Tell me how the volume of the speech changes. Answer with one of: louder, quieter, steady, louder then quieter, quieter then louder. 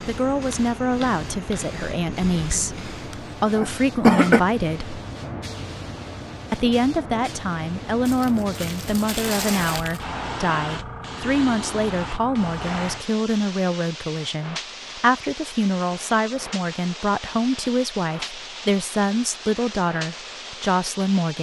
steady.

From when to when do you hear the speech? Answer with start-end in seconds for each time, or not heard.
0.1-5.0, 6.5-21.3.